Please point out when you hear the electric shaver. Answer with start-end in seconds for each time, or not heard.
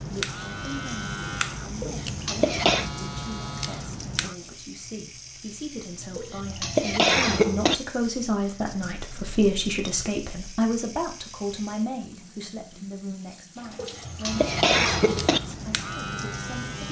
0.0-4.3, 14.2-16.8.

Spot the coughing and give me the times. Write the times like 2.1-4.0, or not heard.
1.8-2.9, 6.2-7.8, 13.8-15.4.